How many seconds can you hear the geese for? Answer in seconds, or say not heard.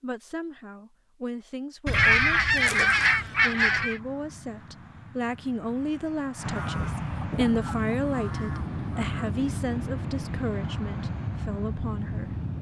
5 s.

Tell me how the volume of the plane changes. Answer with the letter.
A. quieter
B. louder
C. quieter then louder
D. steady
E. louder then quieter
B.